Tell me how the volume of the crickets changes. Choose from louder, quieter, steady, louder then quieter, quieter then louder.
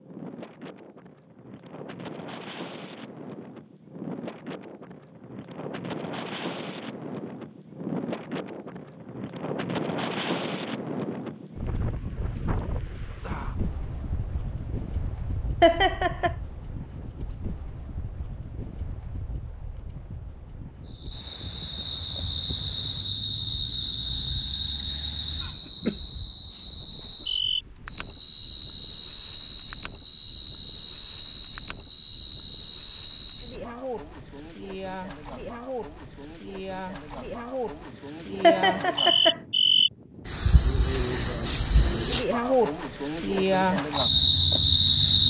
louder.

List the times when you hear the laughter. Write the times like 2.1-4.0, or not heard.
15.6-16.4, 38.4-39.4.